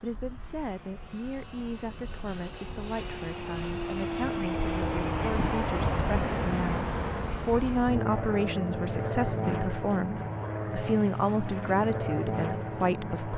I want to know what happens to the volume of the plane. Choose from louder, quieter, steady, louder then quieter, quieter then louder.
louder.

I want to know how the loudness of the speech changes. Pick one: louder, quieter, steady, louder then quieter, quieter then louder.
louder.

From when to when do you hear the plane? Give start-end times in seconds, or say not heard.
0.0-13.3.